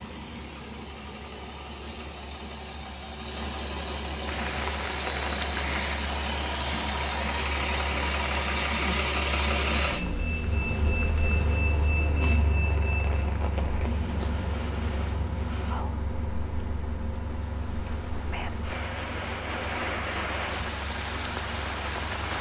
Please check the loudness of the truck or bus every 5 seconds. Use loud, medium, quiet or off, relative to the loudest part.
medium, loud, loud, medium, quiet.